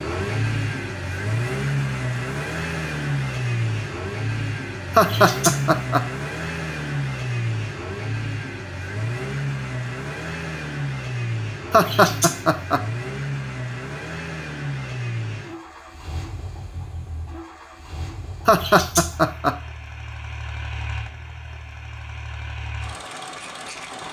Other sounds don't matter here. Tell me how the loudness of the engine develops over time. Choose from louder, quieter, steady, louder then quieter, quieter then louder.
quieter.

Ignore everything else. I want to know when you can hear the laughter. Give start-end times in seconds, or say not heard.
5.0-6.0, 11.7-12.8, 18.4-19.6.